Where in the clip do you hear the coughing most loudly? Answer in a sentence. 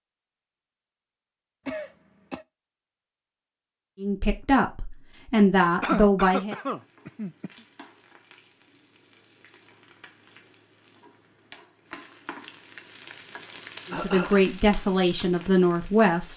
The volume of the coughing peaks at 6 seconds.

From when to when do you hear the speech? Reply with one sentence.
The speech can be heard from 4.0 to 6.5 s and from 13.9 to 16.3 s.